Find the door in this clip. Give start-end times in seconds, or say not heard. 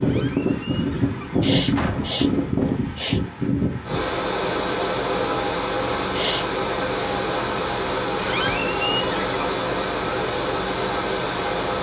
0.0-2.8, 8.2-9.3.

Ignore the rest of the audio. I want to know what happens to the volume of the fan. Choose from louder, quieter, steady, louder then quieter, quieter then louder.
steady.